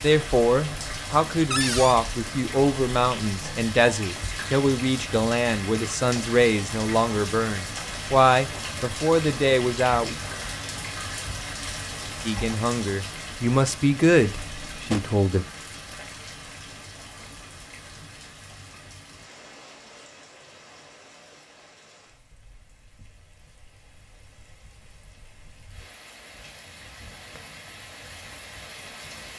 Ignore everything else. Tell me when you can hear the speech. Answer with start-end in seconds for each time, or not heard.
0.0-10.2, 12.2-15.4.